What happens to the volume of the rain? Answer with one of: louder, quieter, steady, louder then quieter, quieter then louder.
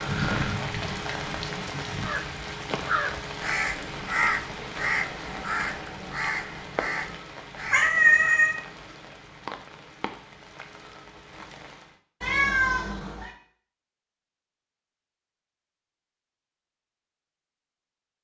quieter.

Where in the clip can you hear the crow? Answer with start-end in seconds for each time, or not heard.
2.0-8.4.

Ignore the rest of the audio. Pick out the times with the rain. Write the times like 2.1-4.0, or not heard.
0.0-12.0.